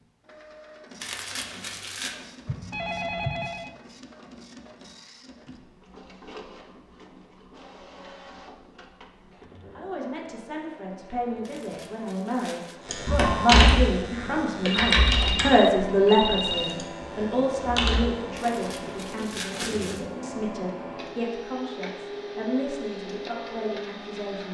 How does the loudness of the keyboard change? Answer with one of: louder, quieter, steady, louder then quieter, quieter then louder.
quieter then louder.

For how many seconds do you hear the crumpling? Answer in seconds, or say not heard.
4 s.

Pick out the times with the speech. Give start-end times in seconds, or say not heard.
9.8-24.4.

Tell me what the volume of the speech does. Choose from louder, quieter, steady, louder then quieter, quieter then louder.
louder then quieter.